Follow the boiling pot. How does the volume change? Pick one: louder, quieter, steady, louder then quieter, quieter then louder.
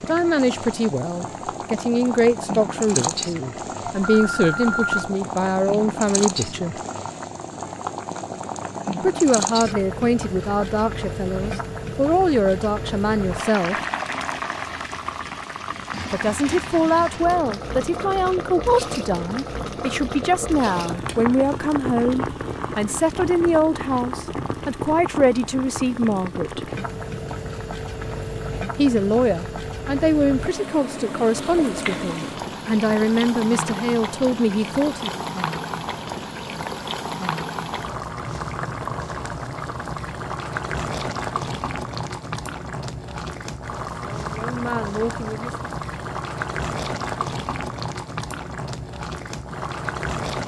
steady.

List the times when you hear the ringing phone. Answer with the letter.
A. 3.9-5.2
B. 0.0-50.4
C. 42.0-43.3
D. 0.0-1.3
A.